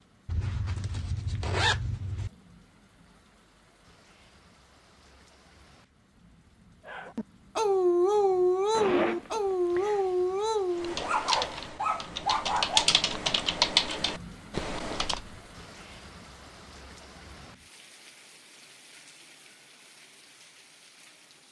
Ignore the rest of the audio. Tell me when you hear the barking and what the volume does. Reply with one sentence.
The barking can be heard from 6.8 to 12.9 s, getting quieter.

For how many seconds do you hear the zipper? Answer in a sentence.
You can hear the zipper for 4 seconds altogether.